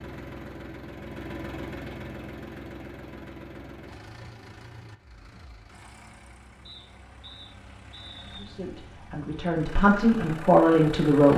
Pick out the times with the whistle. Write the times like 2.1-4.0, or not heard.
6.7-8.5.